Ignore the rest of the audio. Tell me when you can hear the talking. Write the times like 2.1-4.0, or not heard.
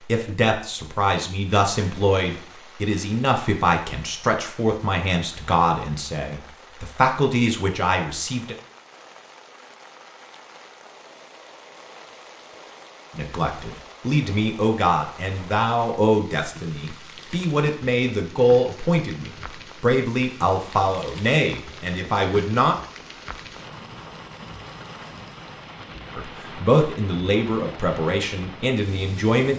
0.1-8.6, 13.2-22.8, 26.1-29.5.